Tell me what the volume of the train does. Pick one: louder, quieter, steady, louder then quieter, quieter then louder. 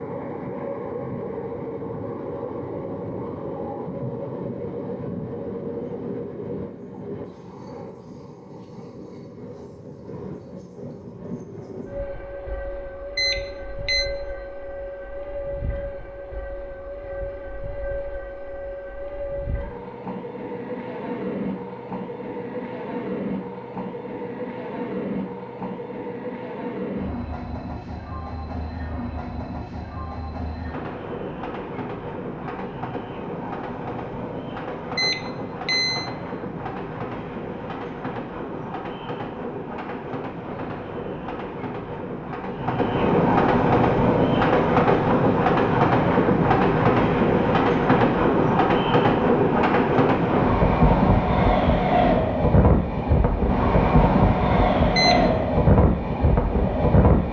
louder.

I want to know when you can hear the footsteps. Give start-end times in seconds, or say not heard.
not heard.